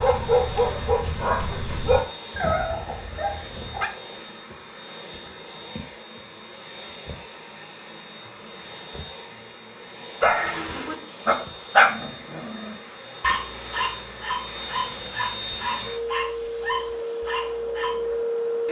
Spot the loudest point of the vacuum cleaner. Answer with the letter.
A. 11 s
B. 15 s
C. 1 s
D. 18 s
D.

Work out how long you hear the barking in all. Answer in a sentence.
The barking can be heard for 12 seconds in total.